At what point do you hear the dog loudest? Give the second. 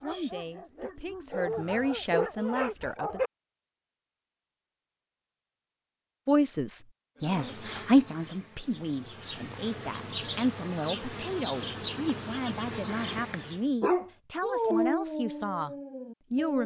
15 s.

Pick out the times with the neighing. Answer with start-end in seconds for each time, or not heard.
not heard.